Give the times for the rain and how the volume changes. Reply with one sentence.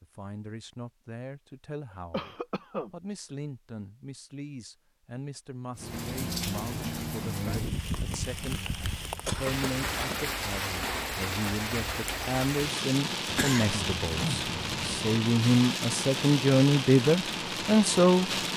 The rain can be heard from 5.8 to 18.5 s, at a steady volume.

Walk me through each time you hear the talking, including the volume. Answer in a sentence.
The talking can be heard from 0.0 to 18.3 s, getting louder.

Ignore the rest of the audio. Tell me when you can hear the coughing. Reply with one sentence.
The coughing can be heard from 1.9 to 2.9 s, from 9.2 to 10.3 s and from 13.2 to 15.1 s.